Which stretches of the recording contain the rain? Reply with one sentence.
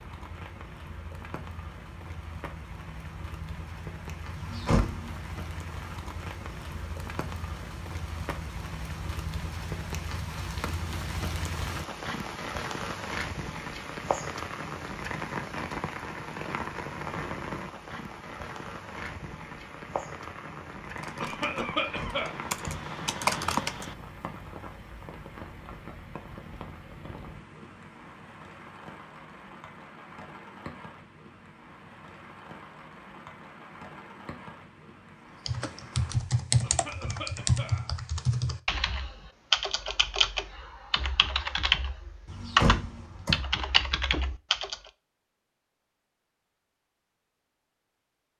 The rain can be heard from 0.0 to 36.1 s.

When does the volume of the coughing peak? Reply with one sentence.
The volume of the coughing peaks at 22 seconds.